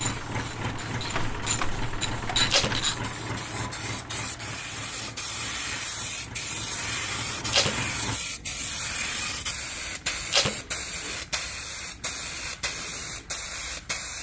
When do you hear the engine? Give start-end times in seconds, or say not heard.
0.0-8.2.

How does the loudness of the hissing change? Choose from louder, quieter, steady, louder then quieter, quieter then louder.
louder.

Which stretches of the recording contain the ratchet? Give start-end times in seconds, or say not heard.
0.0-3.0.